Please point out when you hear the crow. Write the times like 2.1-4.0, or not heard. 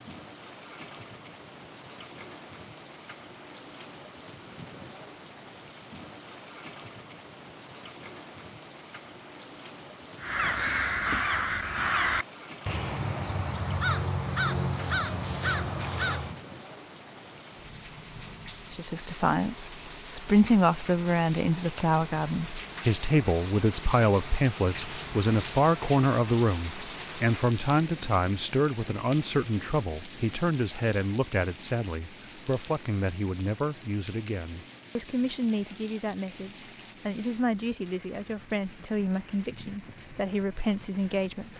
10.2-16.4.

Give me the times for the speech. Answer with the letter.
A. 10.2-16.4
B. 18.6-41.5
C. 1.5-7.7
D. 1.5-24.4
B.